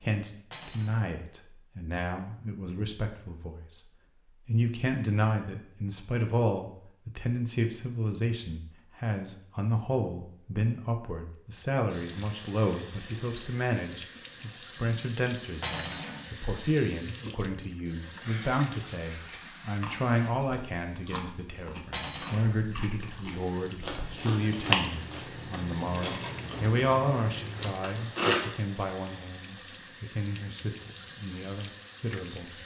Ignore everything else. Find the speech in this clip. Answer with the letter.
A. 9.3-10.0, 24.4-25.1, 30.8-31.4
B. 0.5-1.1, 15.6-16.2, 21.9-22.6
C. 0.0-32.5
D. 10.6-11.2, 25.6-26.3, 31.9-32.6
C.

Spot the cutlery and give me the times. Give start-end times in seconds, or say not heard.
0.5-1.1, 15.6-16.2, 21.9-22.6.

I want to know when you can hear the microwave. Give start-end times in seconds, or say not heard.
not heard.